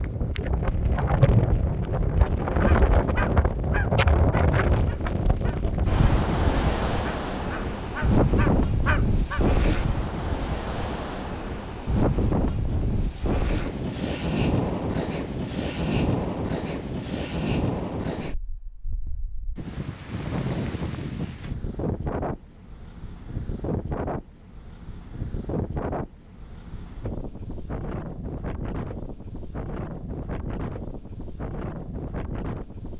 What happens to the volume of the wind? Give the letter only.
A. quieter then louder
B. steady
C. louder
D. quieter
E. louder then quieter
D.